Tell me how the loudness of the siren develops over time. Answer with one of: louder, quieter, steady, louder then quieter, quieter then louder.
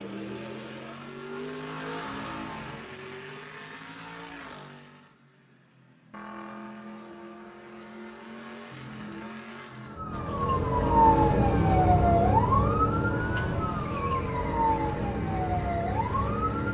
quieter.